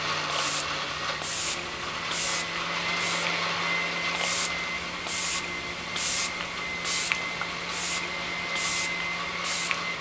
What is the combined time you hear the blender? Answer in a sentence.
The blender can be heard for 10 seconds in total.